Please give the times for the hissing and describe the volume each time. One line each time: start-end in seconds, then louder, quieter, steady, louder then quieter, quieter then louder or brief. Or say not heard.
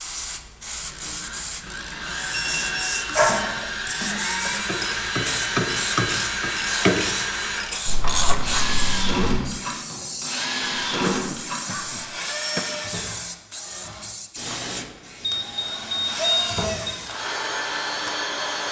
0.0-18.6 quieter.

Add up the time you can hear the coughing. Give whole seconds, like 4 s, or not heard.
3 s.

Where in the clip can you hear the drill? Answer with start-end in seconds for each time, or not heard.
0.0-18.6.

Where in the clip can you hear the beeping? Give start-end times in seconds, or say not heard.
1.9-3.4, 7.8-9.4, 15.2-16.7.